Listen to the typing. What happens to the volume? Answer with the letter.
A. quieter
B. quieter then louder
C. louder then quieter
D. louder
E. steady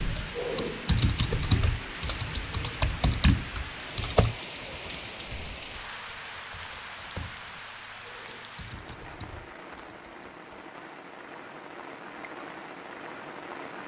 A.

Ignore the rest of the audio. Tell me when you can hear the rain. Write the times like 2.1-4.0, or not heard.
0.0-13.8.